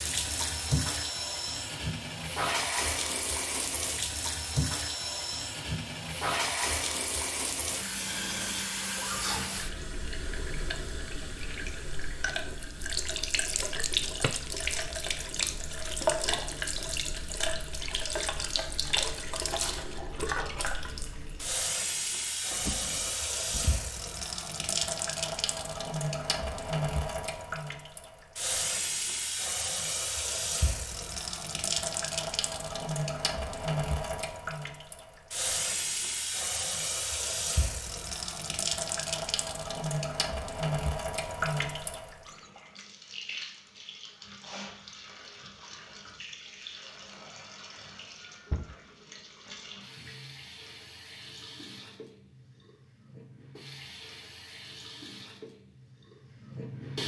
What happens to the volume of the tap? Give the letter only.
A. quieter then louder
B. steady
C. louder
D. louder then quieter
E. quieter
E.